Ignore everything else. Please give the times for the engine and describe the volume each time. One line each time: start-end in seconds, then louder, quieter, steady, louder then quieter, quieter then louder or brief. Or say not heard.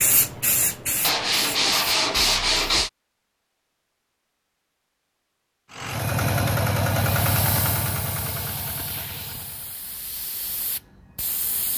5.7-9.8 quieter.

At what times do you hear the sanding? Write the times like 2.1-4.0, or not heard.
1.0-2.9.